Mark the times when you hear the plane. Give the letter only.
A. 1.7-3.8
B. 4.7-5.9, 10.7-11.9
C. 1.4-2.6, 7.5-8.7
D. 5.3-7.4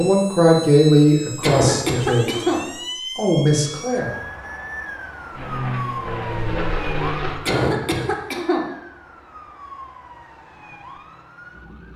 D.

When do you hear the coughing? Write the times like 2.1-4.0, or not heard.
1.4-2.6, 7.5-8.7.